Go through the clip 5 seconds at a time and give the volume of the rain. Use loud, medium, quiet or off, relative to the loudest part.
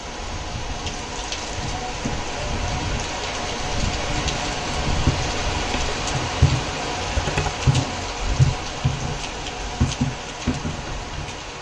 loud, loud, medium.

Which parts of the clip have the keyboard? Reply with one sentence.
You can hear the keyboard from 5.0 to 11.3 s.